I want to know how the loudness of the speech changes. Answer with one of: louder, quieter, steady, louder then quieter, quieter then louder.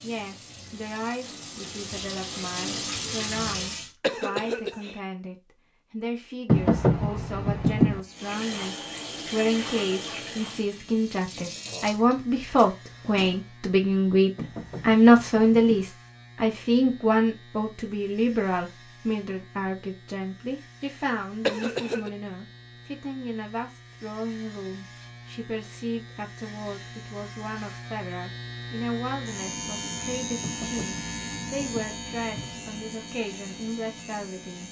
louder then quieter.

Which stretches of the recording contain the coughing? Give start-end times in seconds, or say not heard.
4.0-5.0, 21.4-22.1.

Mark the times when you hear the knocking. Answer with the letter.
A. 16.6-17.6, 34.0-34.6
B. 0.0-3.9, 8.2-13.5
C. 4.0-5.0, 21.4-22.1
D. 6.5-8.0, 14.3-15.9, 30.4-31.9
D.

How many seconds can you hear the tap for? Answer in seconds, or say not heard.
9 s.